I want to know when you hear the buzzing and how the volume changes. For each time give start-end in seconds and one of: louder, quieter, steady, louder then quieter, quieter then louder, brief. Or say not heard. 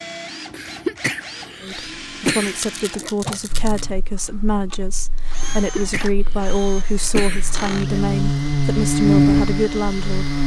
3.5-10.4 louder.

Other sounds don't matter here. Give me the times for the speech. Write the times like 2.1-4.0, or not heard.
1.6-10.4.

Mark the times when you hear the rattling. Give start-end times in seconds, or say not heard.
2.5-3.9.